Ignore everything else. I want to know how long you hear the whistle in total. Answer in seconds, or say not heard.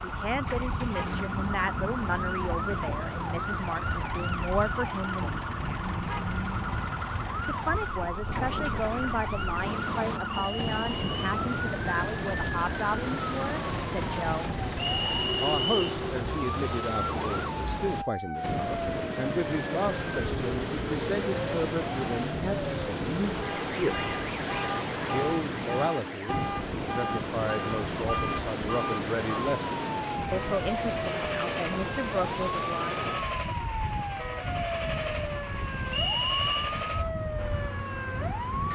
3 s.